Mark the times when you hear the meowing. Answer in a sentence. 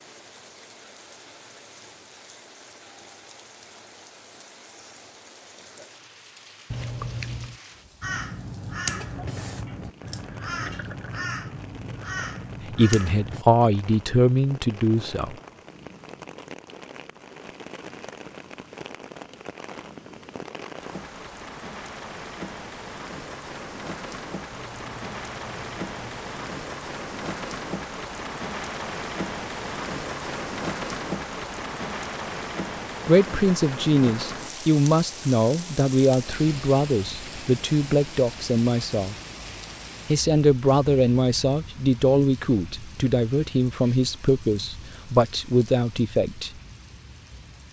The meowing can be heard from 6.7 to 7.6 s and from 24.5 to 26.6 s.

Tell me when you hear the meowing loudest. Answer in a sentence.
The volume of the meowing peaks at 7 seconds.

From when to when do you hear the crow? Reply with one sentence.
You can hear the crow from 8.0 to 13.4 s.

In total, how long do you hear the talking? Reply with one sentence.
The talking can be heard for 15 seconds in total.